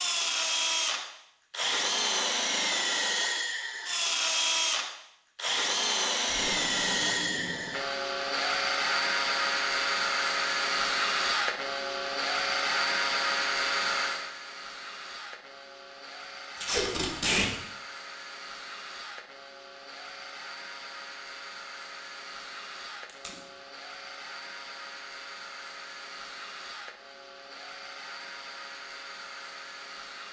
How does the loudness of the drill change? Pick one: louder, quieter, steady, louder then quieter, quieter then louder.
quieter.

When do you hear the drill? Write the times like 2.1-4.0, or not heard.
0.0-30.2.